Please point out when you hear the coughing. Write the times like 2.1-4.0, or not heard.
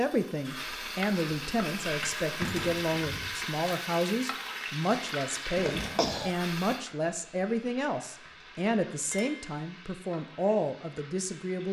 5.5-6.3.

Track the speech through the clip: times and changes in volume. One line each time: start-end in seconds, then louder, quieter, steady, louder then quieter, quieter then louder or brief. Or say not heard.
0.0-11.6 steady.